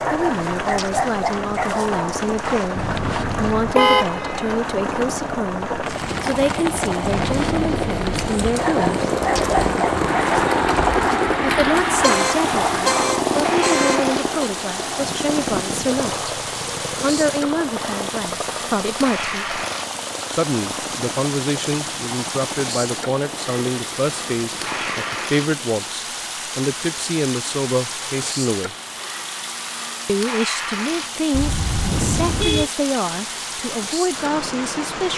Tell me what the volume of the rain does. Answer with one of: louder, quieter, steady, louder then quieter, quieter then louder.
steady.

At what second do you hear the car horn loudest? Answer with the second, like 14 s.
4 s.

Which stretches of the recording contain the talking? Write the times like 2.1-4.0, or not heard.
0.1-9.0, 11.4-16.1, 17.0-19.6, 20.3-28.8, 30.1-35.1.